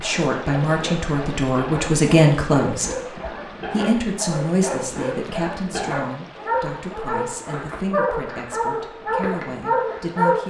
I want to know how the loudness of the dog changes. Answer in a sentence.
The loudness of the dog goes up.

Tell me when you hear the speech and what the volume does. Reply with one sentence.
You can hear the speech from 0.0 to 10.4 s, getting quieter.